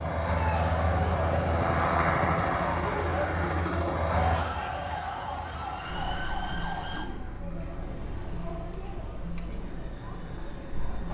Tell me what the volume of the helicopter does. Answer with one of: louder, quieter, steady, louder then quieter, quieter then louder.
quieter.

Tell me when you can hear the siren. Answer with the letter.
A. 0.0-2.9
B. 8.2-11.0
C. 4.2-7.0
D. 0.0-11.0
C.